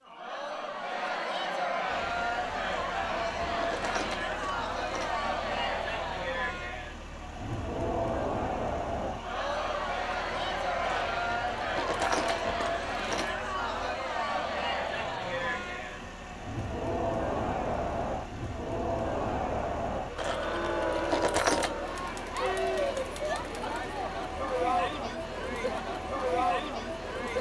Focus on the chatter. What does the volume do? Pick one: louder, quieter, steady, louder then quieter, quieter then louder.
steady.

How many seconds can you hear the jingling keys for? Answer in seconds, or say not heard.
7 s.